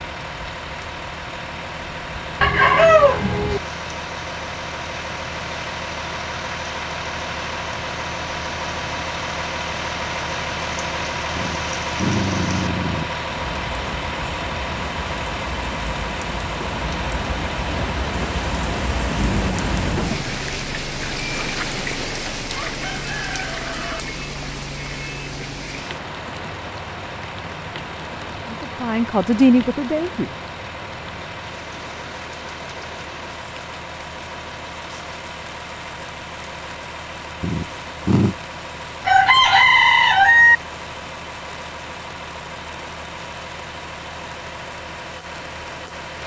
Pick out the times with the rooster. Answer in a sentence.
The rooster can be heard from 2.4 to 3.6 s, from 22.5 to 24.0 s and from 39.0 to 40.5 s.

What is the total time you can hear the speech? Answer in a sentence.
The speech can be heard for 2 seconds in total.